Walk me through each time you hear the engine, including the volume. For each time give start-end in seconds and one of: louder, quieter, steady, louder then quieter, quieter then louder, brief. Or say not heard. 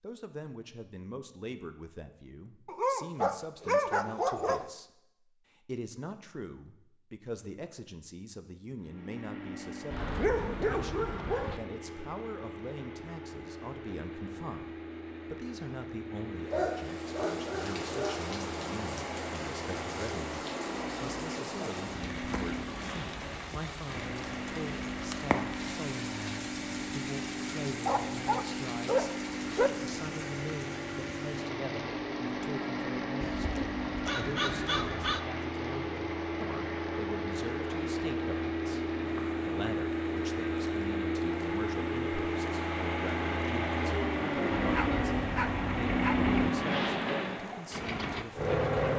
8.8-48.9 louder.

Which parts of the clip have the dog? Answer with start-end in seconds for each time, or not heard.
2.6-4.7, 9.9-11.6, 16.5-18.2, 27.9-29.7, 33.2-35.2, 44.5-46.5.